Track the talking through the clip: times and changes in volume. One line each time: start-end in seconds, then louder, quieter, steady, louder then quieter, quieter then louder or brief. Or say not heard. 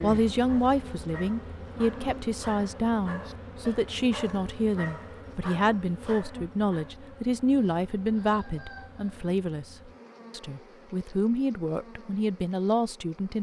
0.0-13.3 steady.